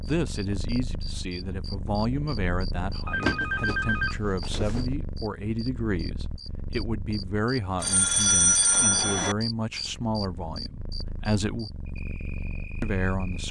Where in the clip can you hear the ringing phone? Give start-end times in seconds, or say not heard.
3.0-4.8, 7.8-9.3.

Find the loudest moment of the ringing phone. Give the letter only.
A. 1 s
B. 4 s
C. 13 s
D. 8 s
D.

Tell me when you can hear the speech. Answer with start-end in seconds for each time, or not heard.
0.0-11.7, 12.8-13.4.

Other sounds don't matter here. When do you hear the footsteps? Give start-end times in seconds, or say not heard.
not heard.